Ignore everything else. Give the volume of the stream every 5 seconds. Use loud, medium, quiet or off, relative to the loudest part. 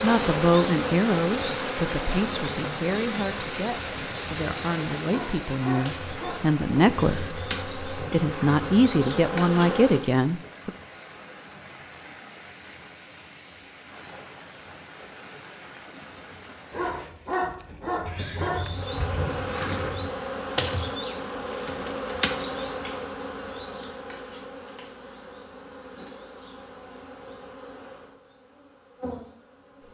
loud, medium, quiet, quiet, off, off.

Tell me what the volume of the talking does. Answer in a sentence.
The loudness of the talking goes down, then up.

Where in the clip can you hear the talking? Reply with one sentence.
The talking can be heard from 0.0 to 10.7 s.